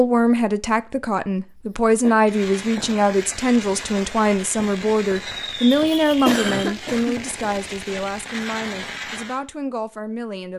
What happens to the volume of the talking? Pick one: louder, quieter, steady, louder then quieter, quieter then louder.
quieter.